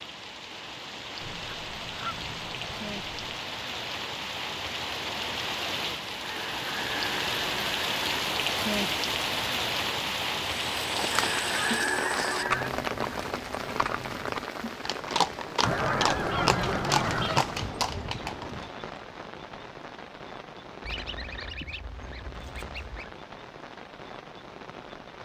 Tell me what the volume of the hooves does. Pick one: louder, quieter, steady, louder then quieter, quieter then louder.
quieter then louder.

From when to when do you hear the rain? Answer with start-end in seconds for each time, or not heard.
0.0-25.2.